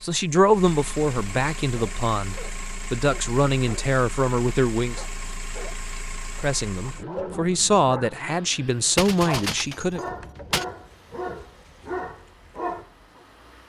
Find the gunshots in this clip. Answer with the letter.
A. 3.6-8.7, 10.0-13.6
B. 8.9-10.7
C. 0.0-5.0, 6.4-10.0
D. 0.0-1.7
B.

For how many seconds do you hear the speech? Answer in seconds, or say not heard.
9 s.